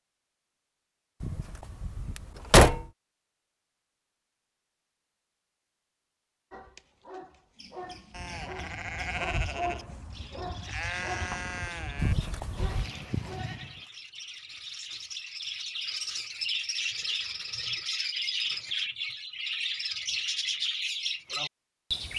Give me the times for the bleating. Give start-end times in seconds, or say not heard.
8.1-13.8.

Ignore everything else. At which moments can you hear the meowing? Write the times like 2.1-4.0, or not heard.
not heard.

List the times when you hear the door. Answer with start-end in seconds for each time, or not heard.
1.2-2.9, 11.9-12.8.